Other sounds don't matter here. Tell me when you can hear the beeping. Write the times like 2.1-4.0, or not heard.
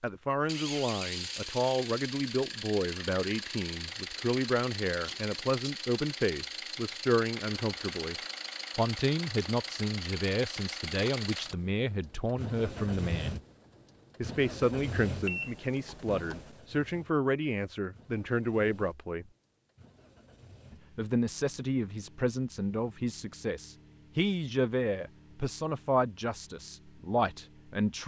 15.2-16.6.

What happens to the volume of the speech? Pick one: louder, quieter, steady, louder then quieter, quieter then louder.
steady.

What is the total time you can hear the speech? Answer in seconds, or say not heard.
25 s.